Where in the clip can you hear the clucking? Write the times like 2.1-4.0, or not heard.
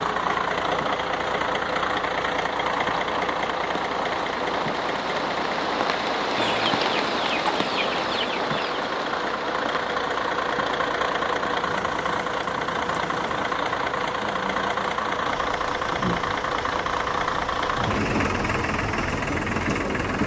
6.3-8.8.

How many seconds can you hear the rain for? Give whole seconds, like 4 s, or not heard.
20 s.